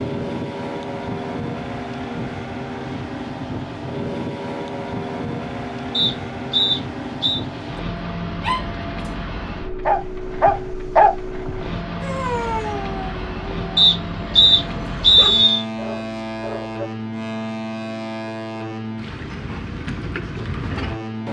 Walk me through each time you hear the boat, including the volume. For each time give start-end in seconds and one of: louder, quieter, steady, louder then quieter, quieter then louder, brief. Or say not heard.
0.0-21.2 steady.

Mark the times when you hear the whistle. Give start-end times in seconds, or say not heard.
5.9-7.4, 13.8-15.7.